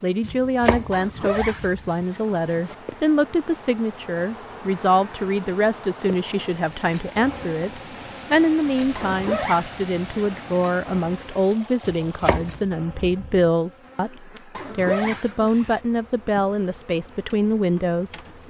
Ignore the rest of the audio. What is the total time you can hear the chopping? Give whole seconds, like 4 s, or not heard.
3 s.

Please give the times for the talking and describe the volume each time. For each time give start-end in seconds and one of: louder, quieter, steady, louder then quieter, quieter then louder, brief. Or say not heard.
0.0-18.4 steady.